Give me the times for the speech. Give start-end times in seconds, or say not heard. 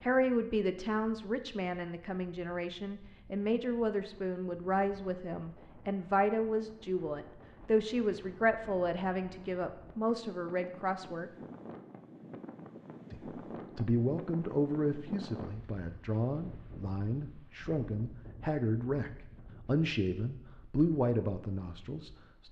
0.0-11.3, 13.1-22.4.